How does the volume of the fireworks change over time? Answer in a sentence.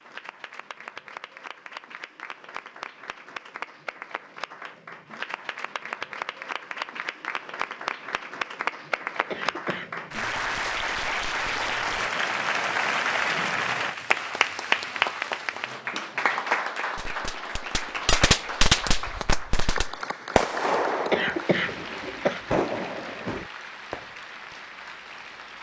The volume of the fireworks goes down, then up.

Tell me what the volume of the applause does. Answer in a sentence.
The loudness of the applause goes up, then down.